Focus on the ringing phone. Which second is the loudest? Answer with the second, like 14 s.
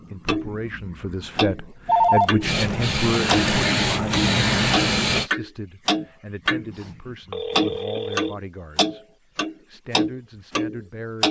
2 s.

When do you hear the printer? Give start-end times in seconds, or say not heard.
2.4-5.3.